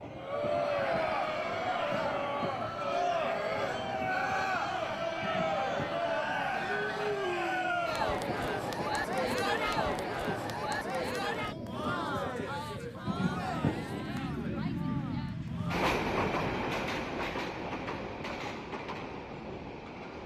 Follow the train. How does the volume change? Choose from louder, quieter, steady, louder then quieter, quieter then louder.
louder.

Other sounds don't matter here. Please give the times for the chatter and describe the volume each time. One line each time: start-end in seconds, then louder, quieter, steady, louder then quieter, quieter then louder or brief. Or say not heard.
0.1-15.8 quieter.